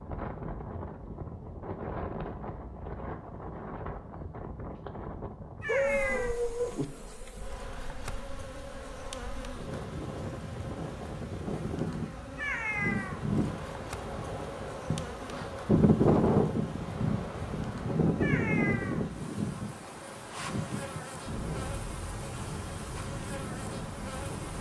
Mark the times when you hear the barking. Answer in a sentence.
The barking can be heard from 5.7 to 6.8 s.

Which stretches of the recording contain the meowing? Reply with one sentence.
You can hear the meowing from 5.6 to 6.3 s, from 12.3 to 13.2 s and from 18.1 to 19.1 s.